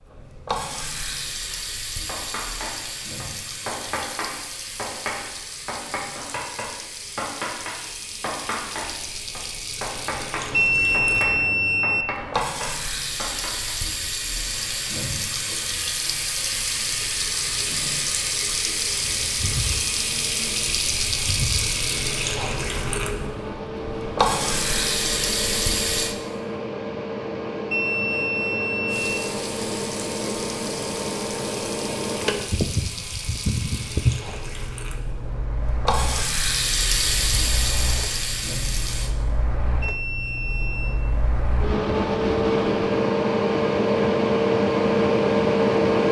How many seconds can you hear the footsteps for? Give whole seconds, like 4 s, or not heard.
not heard.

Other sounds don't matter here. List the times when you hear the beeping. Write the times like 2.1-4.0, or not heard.
10.5-12.1, 27.6-29.2, 39.8-41.0.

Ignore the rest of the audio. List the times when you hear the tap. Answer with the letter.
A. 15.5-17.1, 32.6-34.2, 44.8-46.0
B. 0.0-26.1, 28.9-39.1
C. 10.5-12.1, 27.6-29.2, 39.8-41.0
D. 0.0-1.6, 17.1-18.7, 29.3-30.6
B.